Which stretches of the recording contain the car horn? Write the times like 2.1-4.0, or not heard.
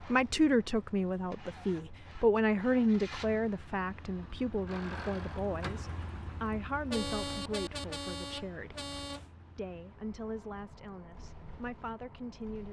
6.9-9.3.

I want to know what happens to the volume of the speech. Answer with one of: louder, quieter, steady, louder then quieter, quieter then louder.
quieter.